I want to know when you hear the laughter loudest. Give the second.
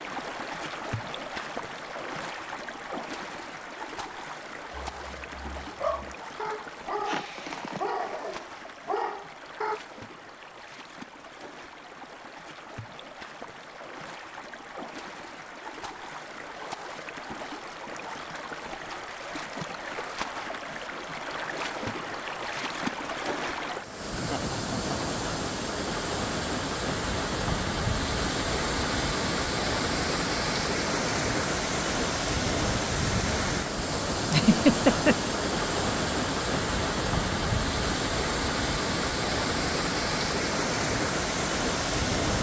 35 s.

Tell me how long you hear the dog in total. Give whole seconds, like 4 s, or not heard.
5 s.